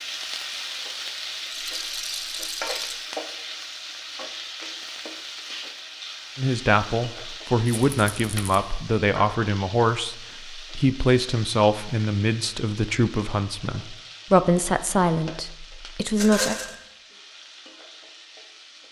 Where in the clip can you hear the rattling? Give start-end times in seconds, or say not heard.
1.5-3.0, 7.7-8.6, 16.1-16.8.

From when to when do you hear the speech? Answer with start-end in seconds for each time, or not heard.
6.3-16.6.